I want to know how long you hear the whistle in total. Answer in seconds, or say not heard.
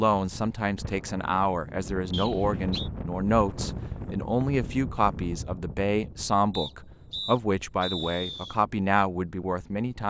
3 s.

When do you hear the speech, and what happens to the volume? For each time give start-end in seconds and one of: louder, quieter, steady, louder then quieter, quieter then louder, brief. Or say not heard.
0.0-10.0 steady.